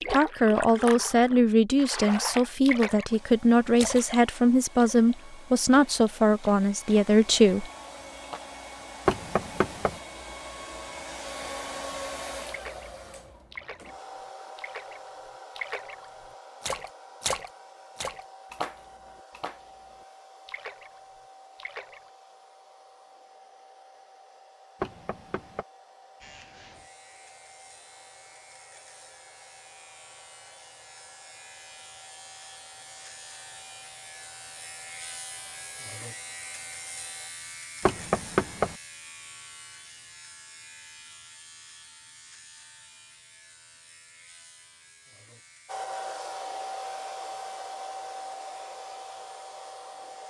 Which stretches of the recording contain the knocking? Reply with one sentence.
You can hear the knocking from 9.1 to 10.0 s, from 24.8 to 25.6 s and from 37.8 to 38.8 s.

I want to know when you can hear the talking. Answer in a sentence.
The talking can be heard from 0.1 to 7.7 s.